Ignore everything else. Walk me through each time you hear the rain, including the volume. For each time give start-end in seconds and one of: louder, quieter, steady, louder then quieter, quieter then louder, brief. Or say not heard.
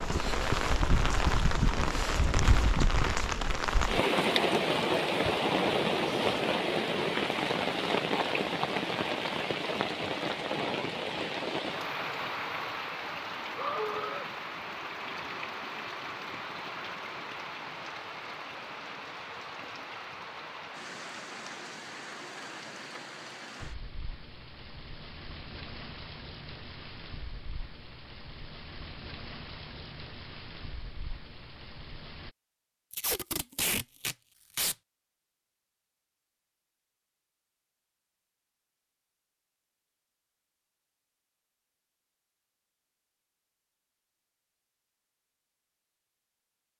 0.0-32.4 quieter.